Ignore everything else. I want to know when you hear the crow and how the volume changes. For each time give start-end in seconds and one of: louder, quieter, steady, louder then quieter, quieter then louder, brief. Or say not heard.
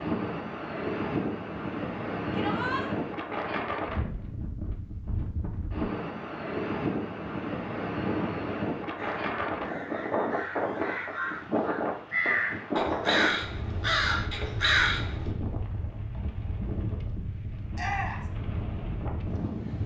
8.9-15.3 louder.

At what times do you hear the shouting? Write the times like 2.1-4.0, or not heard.
2.3-2.9, 17.8-18.3.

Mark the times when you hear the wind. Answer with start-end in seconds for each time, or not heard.
0.0-19.8.